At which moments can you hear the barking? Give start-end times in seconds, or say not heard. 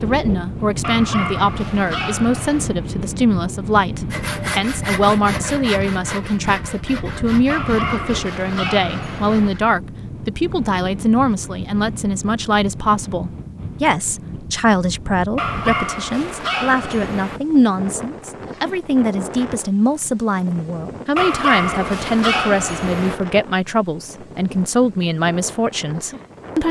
0.8-2.8, 7.5-9.5, 15.3-17.4, 21.1-23.1.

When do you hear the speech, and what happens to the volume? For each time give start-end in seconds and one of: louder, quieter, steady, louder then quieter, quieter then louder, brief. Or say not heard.
0.0-26.6 steady.